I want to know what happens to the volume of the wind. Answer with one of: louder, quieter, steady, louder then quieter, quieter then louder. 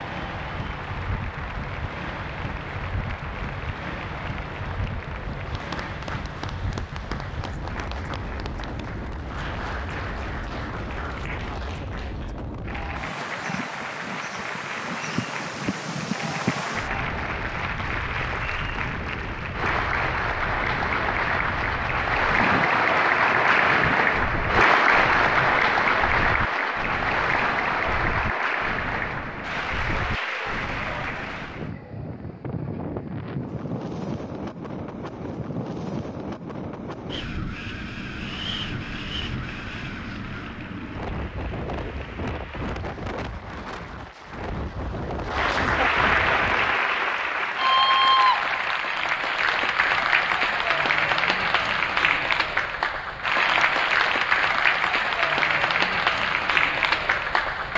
steady.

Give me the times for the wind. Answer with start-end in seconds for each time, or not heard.
0.0-46.8.